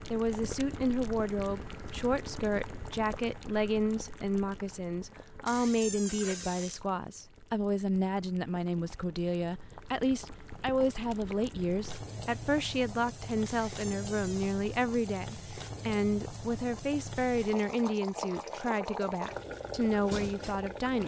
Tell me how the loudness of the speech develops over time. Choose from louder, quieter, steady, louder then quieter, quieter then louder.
steady.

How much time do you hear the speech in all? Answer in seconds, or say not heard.
21 s.